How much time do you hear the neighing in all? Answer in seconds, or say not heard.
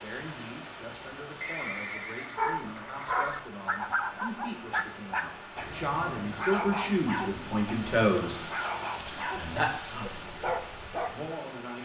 2 s.